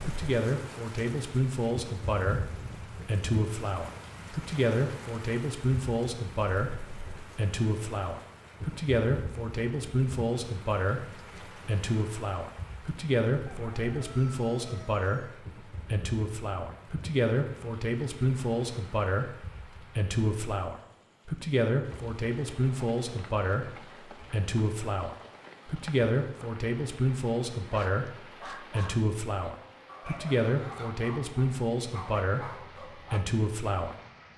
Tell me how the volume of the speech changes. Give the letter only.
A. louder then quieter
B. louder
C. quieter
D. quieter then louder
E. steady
E.